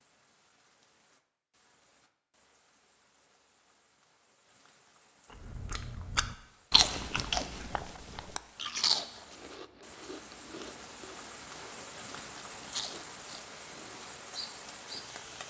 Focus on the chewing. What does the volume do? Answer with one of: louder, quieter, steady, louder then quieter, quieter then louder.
quieter then louder.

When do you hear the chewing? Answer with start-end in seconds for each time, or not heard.
5.5-14.1.